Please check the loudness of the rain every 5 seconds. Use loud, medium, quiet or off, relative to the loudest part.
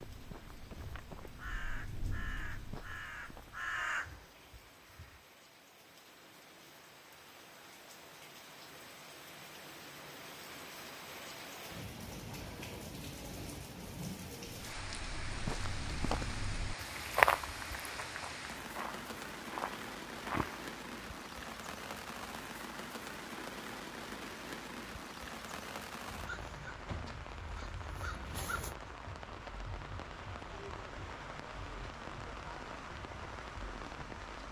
quiet, medium, loud, loud, loud, loud, loud.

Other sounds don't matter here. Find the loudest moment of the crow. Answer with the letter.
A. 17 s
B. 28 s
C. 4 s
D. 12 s
C.